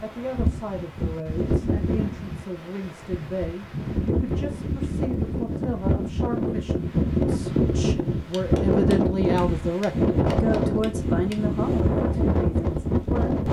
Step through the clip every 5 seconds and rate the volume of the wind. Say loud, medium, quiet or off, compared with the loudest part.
medium, loud, loud.